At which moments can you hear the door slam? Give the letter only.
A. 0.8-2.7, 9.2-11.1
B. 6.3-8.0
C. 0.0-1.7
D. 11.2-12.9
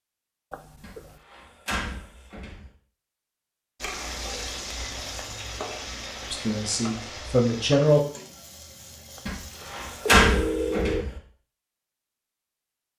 A.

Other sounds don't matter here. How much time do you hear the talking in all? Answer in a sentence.
The talking can be heard for 2 seconds in total.